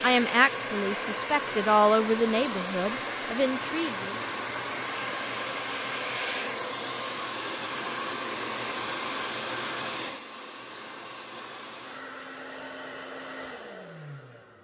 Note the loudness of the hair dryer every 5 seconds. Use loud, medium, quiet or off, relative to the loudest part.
loud, loud, medium.